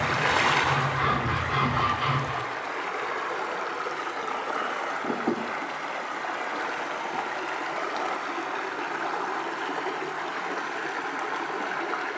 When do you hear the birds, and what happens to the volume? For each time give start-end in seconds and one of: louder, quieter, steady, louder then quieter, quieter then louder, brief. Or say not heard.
not heard.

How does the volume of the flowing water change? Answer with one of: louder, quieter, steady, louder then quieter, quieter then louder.
steady.